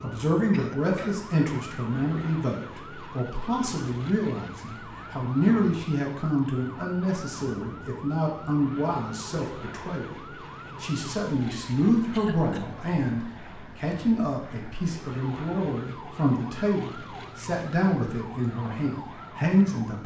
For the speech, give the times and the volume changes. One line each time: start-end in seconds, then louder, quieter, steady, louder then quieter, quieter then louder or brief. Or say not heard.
0.0-20.0 steady.